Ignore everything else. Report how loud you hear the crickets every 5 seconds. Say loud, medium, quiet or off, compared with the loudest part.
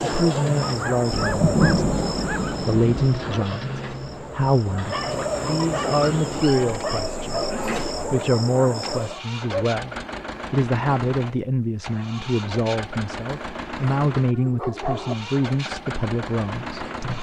loud, loud, off, off.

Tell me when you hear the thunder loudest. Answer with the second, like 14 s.
2 s.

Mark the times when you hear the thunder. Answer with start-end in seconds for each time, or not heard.
1.1-3.1.